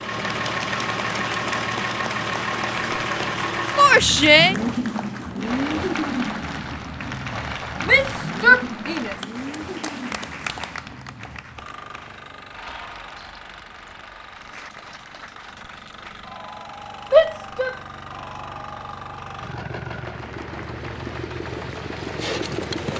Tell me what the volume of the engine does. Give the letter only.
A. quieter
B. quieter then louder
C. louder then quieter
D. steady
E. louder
B.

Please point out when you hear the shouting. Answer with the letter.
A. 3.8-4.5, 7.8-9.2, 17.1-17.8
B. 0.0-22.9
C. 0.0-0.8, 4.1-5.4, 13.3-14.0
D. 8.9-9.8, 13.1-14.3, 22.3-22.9
A.